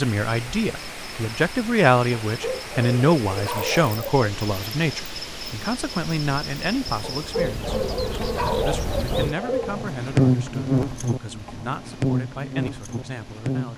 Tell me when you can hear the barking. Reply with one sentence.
The barking can be heard from 2.3 to 4.2 s and from 7.0 to 9.8 s.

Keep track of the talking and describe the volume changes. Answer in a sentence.
The loudness of the talking goes down.